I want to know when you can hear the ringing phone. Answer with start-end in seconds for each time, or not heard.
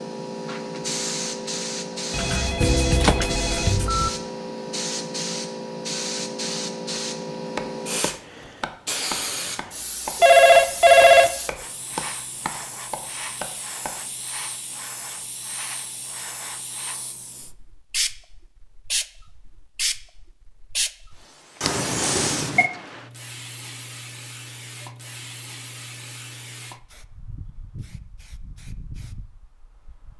2.1-4.1, 10.2-11.3, 21.6-22.7.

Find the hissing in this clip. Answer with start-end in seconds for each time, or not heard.
0.0-30.1.